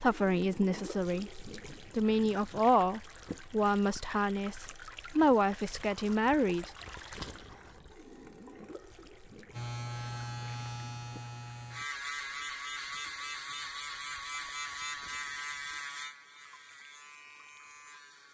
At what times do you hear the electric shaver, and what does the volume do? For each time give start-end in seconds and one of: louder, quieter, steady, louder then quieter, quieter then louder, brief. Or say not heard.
9.5-18.2 quieter.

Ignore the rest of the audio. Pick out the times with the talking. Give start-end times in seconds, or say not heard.
0.0-6.7.